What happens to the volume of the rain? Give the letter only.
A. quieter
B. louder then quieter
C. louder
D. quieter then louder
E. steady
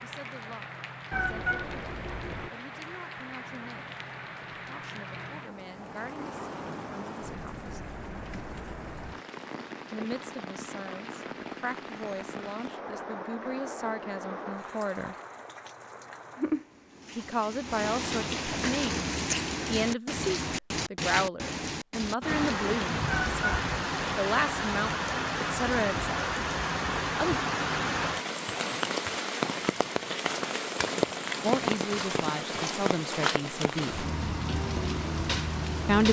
C.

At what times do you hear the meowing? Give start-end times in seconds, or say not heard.
1.1-2.5, 23.1-23.6.